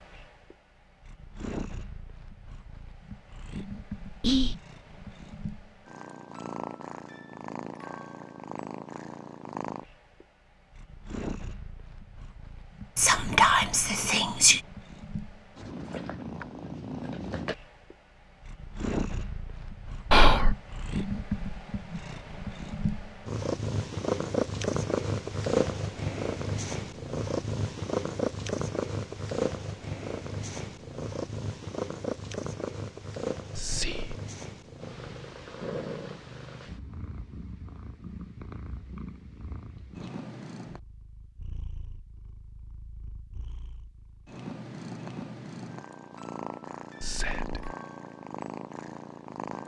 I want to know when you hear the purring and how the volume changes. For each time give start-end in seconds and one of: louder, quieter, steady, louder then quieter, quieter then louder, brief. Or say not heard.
0.0-49.6 louder then quieter.